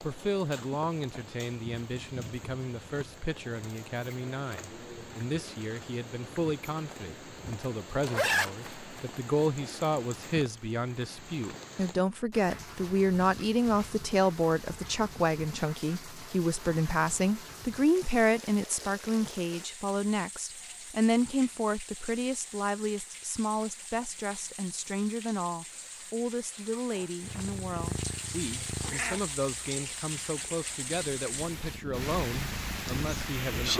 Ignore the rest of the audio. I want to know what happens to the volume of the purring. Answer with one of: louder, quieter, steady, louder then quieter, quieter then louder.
quieter then louder.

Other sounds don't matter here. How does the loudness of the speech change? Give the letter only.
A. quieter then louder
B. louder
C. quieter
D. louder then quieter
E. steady
D.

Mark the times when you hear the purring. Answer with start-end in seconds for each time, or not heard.
27.2-33.7.